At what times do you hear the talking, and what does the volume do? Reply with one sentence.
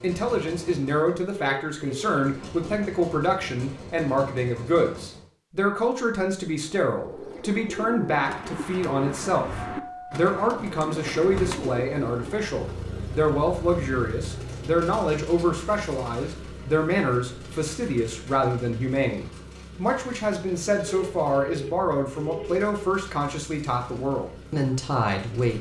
The talking can be heard from 0.0 to 25.5 s, at a steady volume.